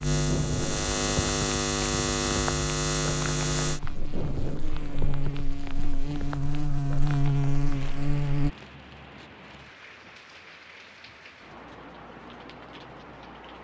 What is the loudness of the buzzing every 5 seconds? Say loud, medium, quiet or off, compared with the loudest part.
loud, loud, off.